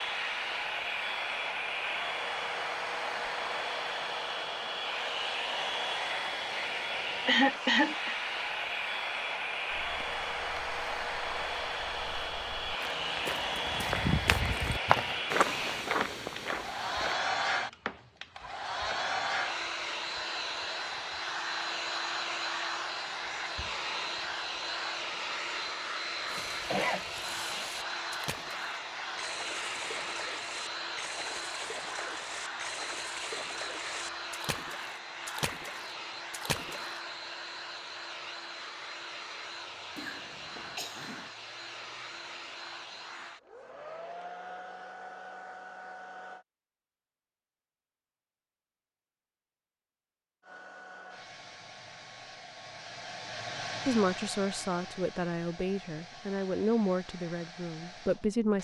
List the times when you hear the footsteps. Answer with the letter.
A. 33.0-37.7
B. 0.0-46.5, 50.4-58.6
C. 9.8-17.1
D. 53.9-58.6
C.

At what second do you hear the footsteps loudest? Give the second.
15 s.